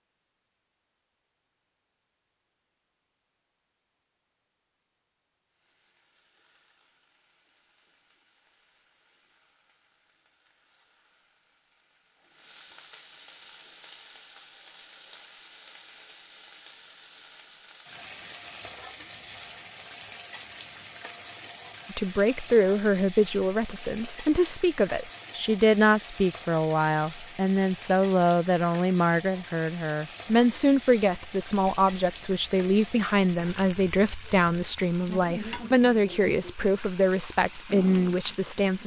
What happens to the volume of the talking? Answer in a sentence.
The volume of the talking stays about the same.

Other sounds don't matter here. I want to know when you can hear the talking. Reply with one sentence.
You can hear the talking from 21.9 to 38.8 s.